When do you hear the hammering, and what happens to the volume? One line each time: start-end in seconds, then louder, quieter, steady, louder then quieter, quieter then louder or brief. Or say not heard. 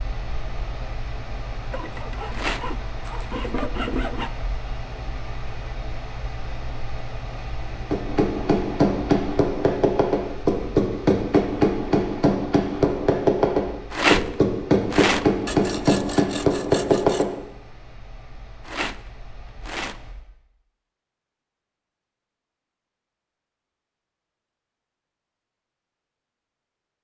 7.9-17.4 steady.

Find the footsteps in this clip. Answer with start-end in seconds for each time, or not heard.
not heard.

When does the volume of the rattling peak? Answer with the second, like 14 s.
14 s.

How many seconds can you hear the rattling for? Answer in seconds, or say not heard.
3 s.